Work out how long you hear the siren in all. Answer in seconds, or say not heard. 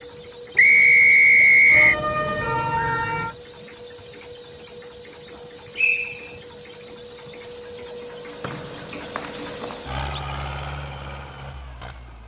2 s.